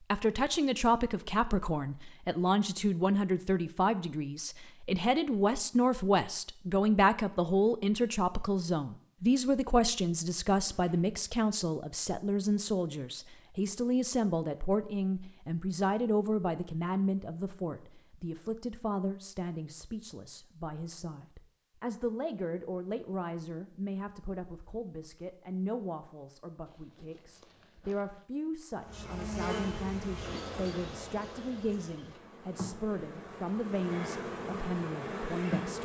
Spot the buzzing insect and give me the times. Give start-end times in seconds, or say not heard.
28.8-35.7.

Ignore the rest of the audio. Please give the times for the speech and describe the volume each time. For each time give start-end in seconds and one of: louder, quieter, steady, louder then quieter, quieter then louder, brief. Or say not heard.
0.1-35.7 quieter.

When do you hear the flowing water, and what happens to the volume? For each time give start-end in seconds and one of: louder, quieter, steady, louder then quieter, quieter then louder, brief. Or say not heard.
not heard.